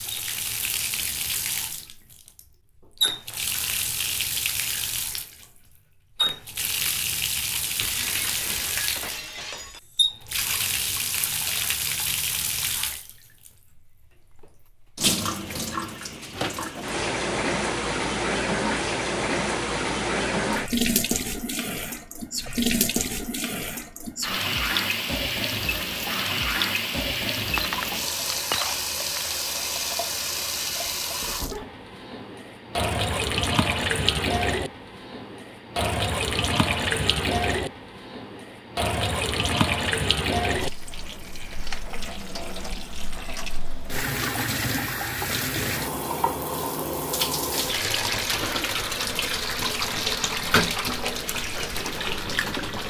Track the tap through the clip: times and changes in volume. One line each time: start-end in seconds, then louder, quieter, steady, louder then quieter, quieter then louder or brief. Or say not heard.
0.0-52.8 steady.